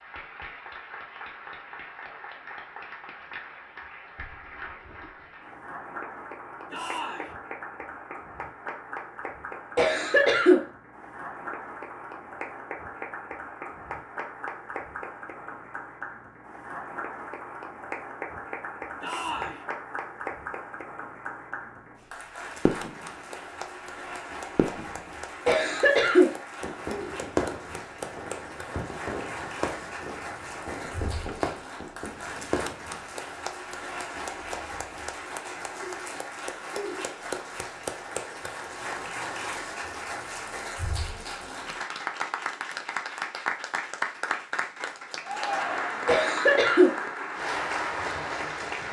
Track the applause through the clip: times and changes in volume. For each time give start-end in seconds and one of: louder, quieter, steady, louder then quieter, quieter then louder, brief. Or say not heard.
0.0-48.8 louder.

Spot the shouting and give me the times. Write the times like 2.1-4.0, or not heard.
6.7-7.3, 19.0-19.6, 45.2-46.1.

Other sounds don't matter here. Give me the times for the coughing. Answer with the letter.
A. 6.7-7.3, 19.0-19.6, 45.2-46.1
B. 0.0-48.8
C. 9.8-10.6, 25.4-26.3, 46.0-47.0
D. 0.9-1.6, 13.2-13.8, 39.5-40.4
C.